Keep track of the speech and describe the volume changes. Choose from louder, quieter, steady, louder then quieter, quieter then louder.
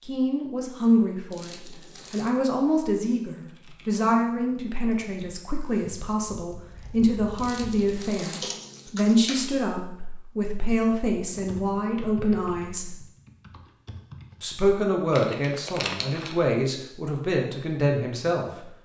steady.